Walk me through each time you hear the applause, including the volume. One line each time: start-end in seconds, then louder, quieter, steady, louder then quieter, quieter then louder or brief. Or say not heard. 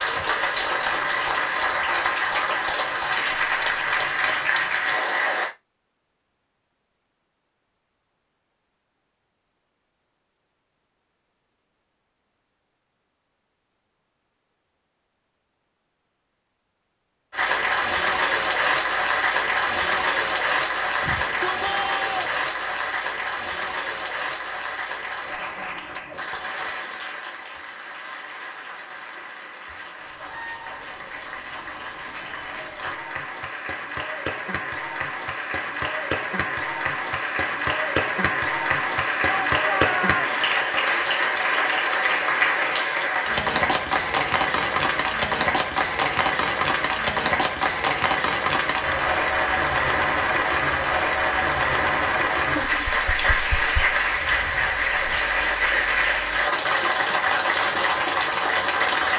0.0-5.5 steady
17.3-59.1 quieter then louder.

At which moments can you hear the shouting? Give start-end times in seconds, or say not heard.
21.0-22.4, 39.2-40.2.